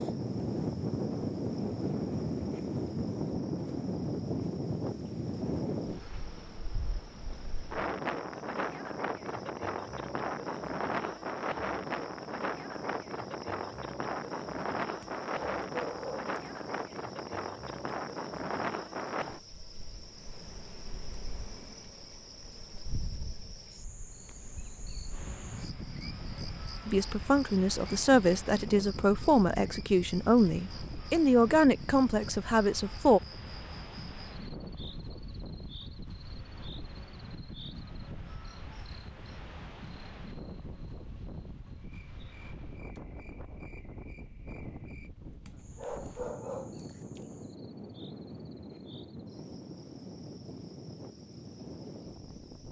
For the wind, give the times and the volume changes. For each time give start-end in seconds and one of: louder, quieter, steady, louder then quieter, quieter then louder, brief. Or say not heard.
0.0-52.6 quieter.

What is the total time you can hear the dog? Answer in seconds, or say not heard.
3 s.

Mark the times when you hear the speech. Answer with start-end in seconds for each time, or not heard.
26.9-33.2.